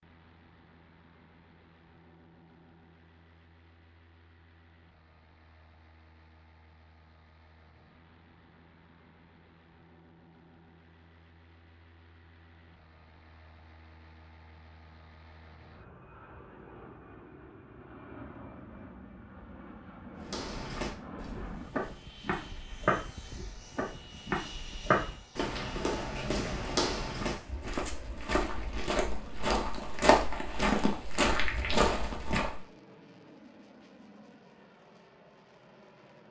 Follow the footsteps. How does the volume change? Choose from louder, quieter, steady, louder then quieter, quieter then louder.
louder.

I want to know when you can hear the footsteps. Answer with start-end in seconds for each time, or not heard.
20.2-32.6.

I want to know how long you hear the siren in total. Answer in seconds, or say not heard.
not heard.